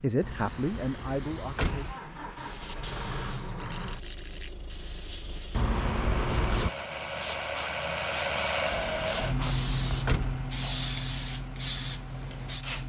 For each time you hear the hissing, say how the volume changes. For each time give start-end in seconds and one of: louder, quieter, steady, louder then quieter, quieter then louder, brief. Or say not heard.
0.0-12.8 louder.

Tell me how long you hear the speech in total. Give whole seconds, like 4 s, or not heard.
2 s.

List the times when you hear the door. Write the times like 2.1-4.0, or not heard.
0.2-1.9, 5.5-6.7, 8.7-10.4.